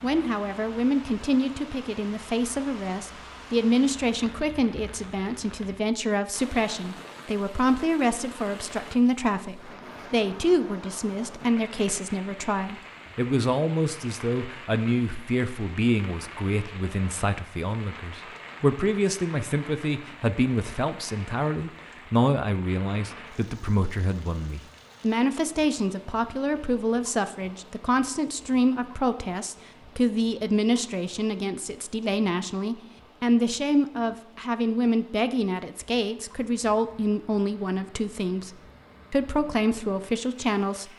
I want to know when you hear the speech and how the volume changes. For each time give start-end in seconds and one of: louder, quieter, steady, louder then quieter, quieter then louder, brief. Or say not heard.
0.0-38.5 steady
39.1-40.9 brief.